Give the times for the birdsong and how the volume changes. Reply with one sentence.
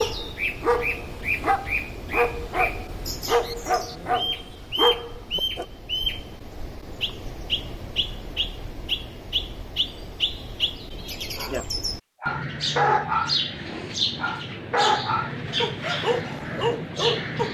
You can hear the birdsong from 0.0 to 17.5 s, at a steady volume.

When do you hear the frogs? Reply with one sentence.
The frogs can't be heard in this clip.